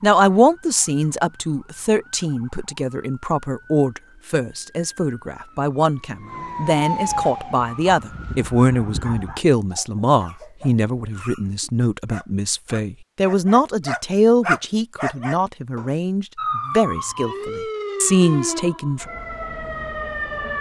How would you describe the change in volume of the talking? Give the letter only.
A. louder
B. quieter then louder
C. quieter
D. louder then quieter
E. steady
E.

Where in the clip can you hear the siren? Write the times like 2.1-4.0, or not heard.
0.0-9.4, 16.4-20.5.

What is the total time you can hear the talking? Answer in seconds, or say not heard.
19 s.